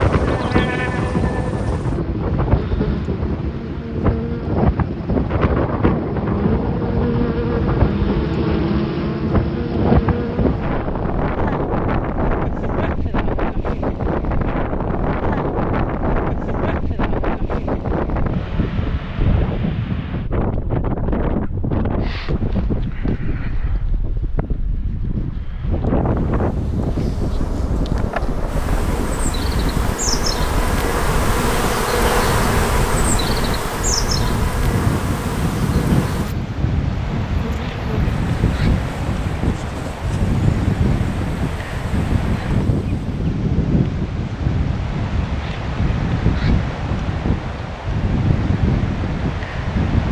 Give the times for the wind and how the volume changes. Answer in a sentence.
The wind can be heard from 0.0 to 50.0 s, at a steady volume.